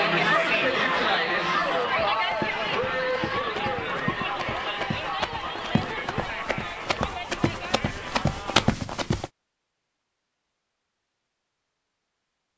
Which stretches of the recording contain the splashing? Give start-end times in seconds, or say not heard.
not heard.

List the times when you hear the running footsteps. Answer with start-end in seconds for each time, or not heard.
1.9-9.3.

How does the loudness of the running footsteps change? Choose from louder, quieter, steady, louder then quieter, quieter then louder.
louder.